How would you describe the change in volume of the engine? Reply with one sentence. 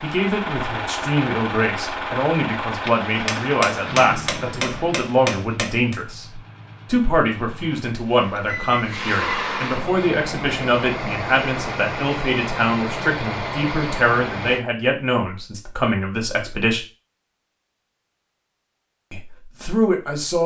The loudness of the engine goes down, then up.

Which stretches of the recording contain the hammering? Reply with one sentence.
The hammering can be heard from 3.2 to 6.0 s.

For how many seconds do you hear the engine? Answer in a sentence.
You can hear the engine for 15 seconds altogether.